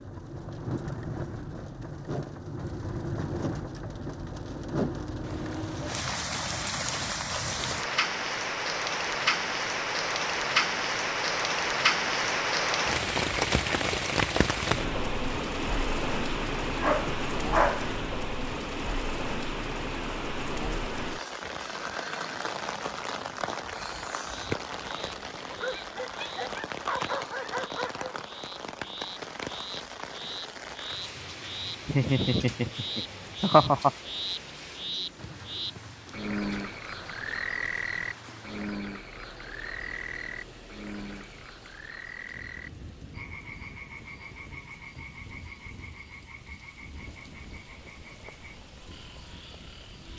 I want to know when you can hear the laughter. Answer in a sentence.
The laughter can be heard from 31.9 to 33.9 s.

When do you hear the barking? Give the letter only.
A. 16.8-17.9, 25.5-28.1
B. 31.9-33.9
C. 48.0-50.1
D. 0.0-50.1
A.